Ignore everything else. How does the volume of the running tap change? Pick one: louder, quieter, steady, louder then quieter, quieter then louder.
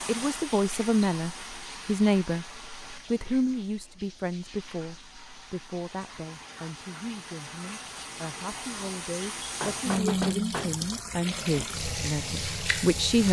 quieter then louder.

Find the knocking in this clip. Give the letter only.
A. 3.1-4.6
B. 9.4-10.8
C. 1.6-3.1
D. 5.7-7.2
B.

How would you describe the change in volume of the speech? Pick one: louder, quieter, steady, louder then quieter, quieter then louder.
quieter then louder.